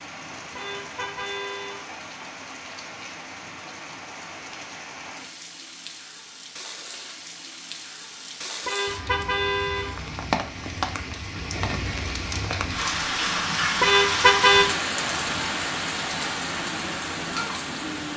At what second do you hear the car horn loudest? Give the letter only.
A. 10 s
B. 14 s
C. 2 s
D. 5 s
B.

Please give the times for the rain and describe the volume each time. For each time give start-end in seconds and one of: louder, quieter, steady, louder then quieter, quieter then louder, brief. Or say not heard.
0.0-18.1 louder.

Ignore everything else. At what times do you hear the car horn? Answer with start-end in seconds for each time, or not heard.
0.6-1.9, 8.7-10.0, 13.8-14.7.